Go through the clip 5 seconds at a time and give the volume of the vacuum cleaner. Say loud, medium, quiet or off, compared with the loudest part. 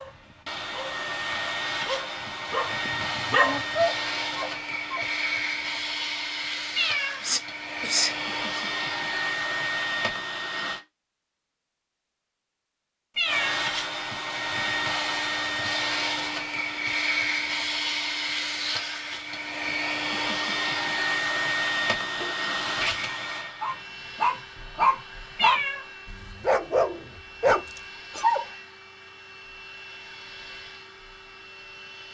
loud, loud, loud, loud, loud, quiet, quiet.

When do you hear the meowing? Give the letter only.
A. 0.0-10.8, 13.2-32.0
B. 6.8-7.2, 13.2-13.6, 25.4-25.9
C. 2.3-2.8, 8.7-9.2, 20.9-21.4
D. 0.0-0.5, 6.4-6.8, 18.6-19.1
B.